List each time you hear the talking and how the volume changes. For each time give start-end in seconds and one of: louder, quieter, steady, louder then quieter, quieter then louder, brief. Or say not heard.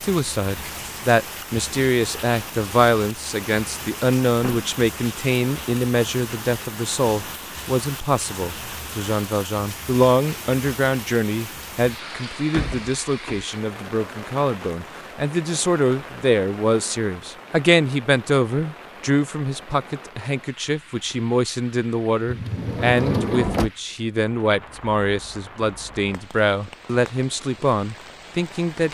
0.0-28.8 steady.